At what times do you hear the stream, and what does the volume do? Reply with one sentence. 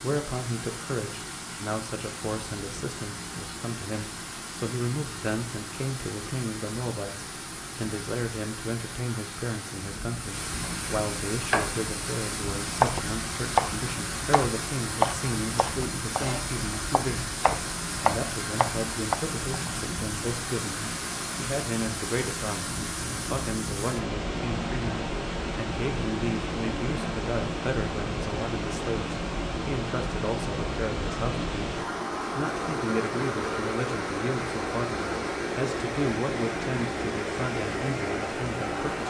You can hear the stream from 0.0 to 39.0 s, getting louder.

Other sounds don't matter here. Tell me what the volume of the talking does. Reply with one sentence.
The volume of the talking stays about the same.